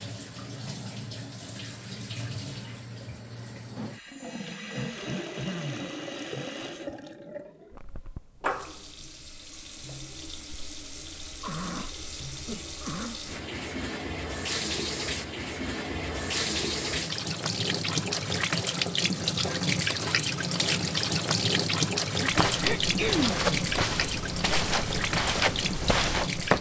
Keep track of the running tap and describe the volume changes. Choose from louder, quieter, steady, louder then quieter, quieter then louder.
louder.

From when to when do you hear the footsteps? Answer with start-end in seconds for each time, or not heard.
22.3-26.5.